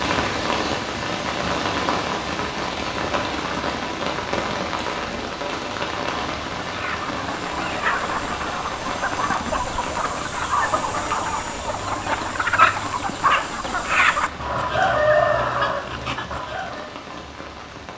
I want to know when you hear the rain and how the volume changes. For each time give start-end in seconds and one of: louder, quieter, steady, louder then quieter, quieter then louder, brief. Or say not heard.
0.0-17.9 quieter.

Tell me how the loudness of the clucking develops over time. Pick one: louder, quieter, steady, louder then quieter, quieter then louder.
louder.